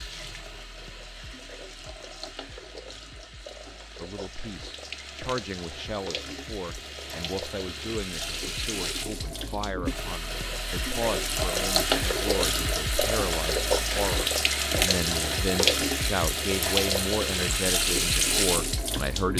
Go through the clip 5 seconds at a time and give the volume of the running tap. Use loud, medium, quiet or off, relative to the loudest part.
quiet, medium, loud, loud.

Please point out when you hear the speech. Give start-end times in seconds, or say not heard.
4.0-19.3.